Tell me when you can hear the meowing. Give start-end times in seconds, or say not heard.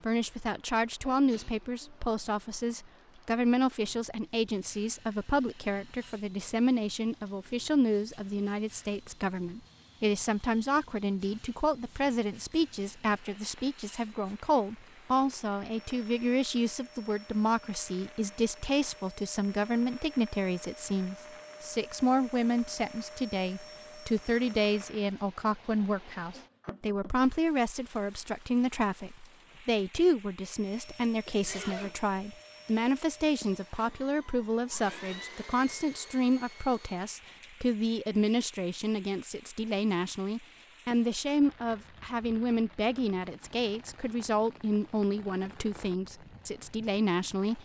not heard.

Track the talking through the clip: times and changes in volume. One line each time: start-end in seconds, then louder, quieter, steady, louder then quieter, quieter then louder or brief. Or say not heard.
0.0-47.6 steady.